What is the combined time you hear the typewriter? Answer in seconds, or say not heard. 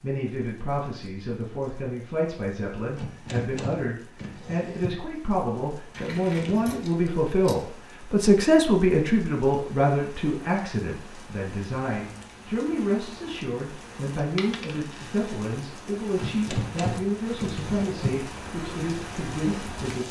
4 s.